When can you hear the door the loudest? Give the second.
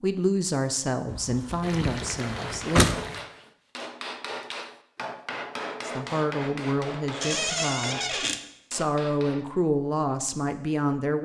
3 s.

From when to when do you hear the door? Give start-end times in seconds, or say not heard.
1.1-3.0, 7.2-8.4.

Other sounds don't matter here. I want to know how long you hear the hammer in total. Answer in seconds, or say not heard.
7 s.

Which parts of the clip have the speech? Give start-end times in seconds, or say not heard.
0.0-3.0, 5.8-11.2.